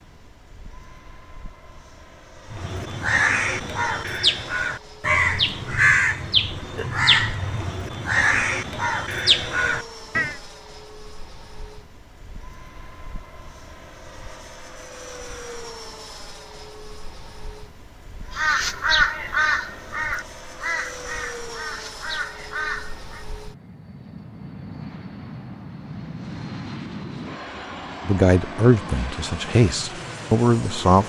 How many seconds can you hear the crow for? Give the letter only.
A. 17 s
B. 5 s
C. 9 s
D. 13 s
D.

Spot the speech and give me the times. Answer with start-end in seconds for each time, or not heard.
28.1-31.0.